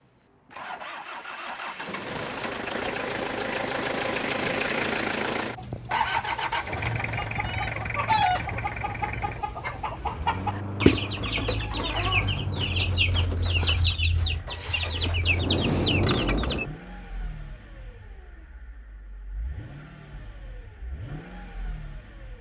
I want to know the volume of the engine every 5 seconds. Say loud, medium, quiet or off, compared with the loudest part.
loud, loud, medium, quiet, quiet.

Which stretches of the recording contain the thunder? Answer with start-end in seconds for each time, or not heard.
15.2-16.7.